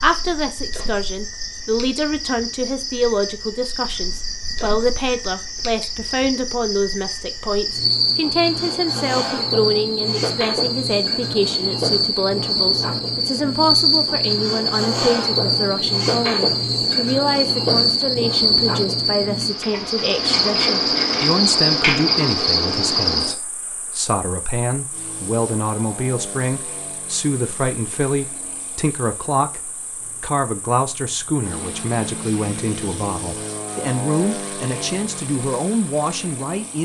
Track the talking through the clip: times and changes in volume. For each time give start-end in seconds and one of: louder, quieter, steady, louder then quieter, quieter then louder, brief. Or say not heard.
0.0-36.8 steady.